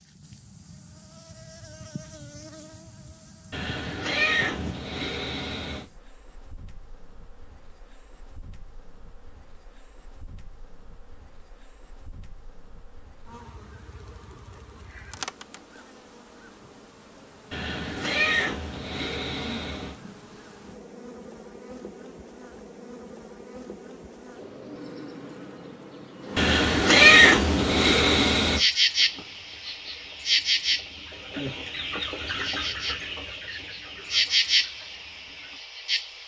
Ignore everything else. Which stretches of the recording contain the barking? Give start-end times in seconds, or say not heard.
not heard.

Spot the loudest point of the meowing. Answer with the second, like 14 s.
27 s.